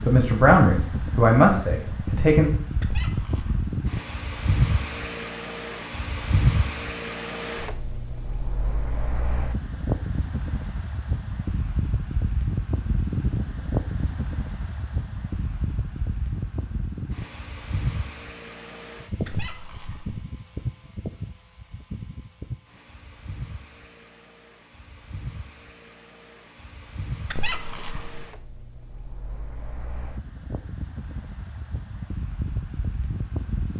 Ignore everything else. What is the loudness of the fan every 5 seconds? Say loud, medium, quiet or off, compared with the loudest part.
loud, loud, loud, medium, medium, quiet, medium.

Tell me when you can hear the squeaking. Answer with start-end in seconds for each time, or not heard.
2.8-3.8, 19.2-20.2, 27.2-28.2.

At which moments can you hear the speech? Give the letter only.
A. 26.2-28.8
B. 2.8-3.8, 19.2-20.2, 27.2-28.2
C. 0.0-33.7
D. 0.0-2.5
D.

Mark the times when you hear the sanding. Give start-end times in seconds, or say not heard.
not heard.